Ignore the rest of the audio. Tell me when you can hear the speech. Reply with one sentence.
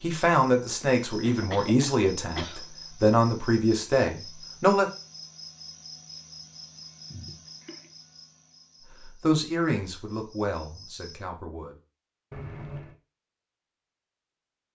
You can hear the speech from 0.0 to 4.9 s and from 9.2 to 11.8 s.